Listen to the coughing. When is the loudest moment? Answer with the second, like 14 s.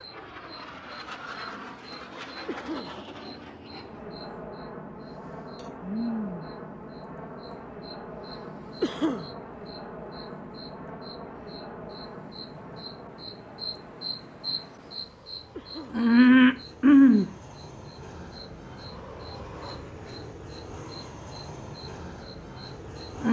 9 s.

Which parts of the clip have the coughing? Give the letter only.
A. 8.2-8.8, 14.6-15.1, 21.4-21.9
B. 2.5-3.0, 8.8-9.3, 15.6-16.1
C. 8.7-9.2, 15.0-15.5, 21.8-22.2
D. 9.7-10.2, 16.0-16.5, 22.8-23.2
B.